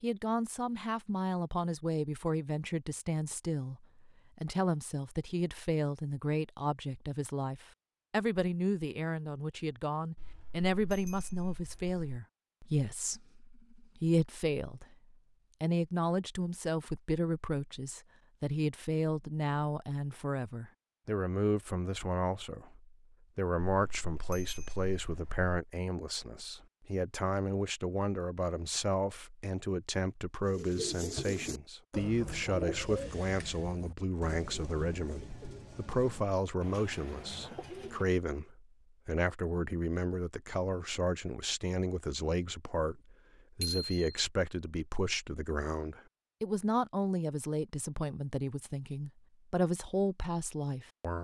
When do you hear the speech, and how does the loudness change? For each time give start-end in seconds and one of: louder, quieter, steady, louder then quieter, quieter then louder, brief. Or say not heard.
0.0-51.2 steady.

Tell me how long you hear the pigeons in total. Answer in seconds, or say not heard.
8 s.